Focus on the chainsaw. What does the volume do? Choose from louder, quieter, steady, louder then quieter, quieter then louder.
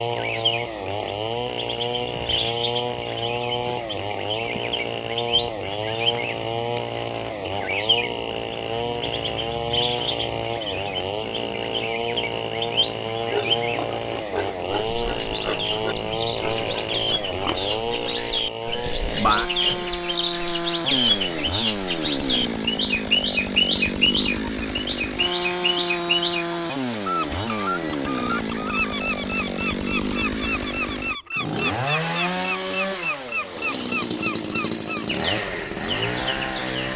steady.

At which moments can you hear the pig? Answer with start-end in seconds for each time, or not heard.
13.2-21.5.